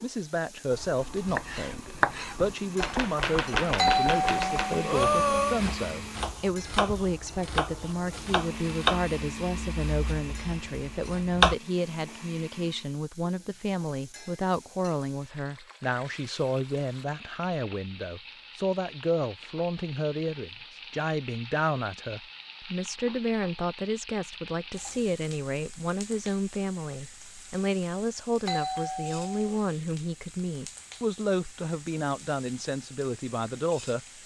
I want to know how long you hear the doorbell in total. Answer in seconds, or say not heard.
3 s.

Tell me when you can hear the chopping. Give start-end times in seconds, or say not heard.
0.7-11.6.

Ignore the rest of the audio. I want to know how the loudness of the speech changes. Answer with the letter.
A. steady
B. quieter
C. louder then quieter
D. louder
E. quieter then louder
A.